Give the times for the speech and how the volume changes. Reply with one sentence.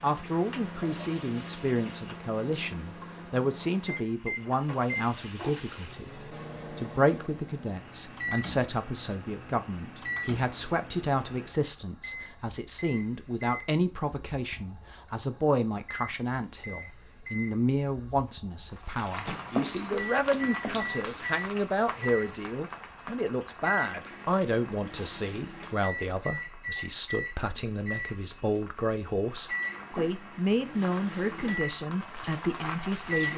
The speech can be heard from 0.0 to 33.3 s, at a steady volume.